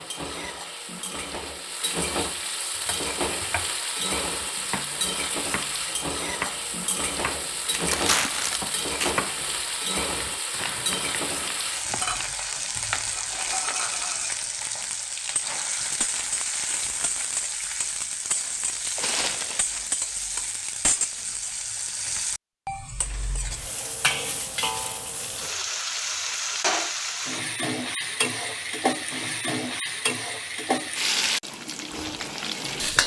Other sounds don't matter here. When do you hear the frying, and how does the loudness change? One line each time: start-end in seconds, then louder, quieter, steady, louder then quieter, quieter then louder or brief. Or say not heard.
0.0-33.0 steady.